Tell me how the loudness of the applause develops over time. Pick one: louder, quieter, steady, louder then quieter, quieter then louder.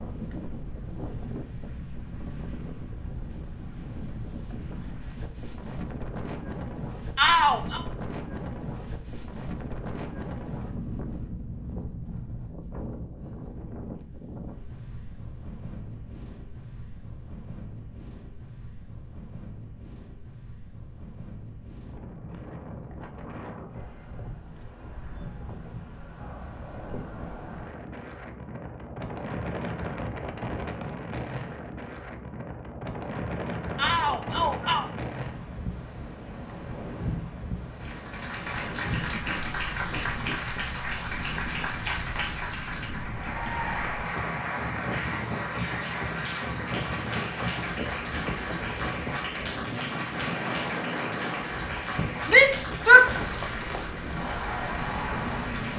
steady.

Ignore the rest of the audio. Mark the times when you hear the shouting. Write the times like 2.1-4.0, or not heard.
7.2-7.8, 33.8-34.9, 52.2-53.0.